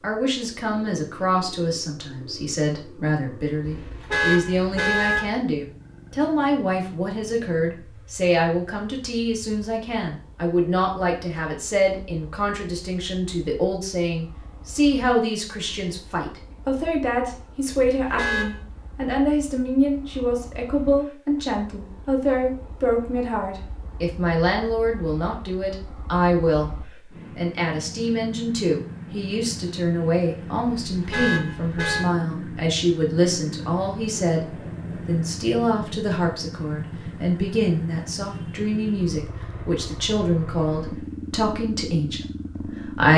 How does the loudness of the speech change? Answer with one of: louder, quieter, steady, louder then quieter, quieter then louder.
steady.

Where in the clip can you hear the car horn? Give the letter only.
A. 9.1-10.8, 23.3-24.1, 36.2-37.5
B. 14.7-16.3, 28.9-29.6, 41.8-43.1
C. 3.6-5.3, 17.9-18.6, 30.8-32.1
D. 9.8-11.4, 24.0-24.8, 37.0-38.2
C.